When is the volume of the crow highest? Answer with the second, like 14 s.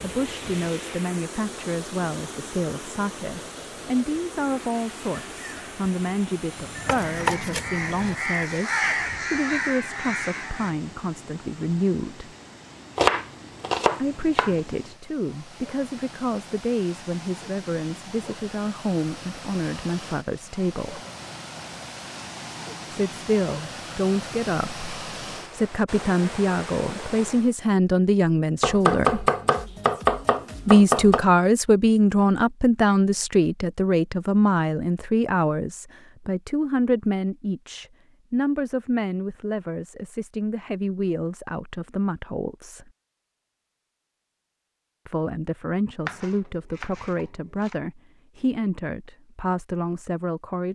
9 s.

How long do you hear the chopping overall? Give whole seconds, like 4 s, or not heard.
7 s.